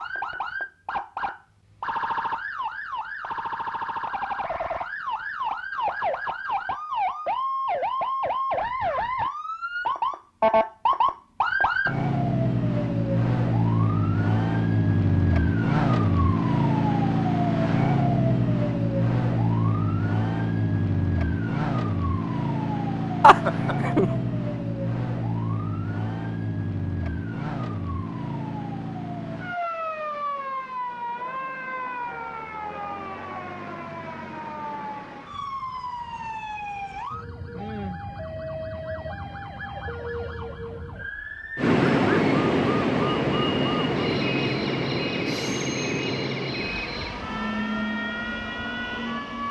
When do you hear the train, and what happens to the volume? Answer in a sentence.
The train can be heard from 41.5 to 49.4 s, getting quieter.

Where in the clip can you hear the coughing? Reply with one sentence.
You can hear the coughing from 23.2 to 24.1 s.